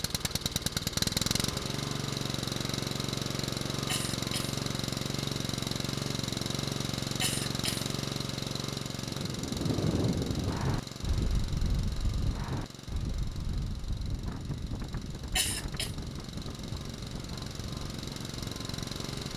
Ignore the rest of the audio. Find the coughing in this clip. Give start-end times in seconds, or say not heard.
3.9-4.6, 7.2-7.9, 15.3-15.9.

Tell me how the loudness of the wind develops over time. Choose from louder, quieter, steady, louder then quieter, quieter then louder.
quieter.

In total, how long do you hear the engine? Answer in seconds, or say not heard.
19 s.